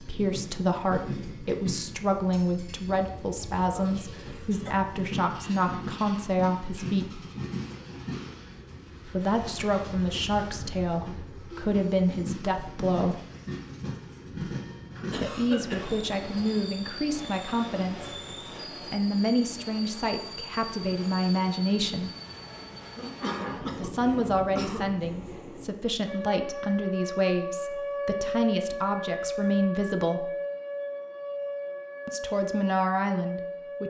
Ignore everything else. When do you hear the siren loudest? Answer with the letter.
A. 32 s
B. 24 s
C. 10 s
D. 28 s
D.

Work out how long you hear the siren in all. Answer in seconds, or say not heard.
8 s.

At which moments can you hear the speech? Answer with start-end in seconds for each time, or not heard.
0.0-7.2, 9.1-13.2, 15.2-18.1, 18.9-22.1, 23.8-30.2, 32.0-33.8.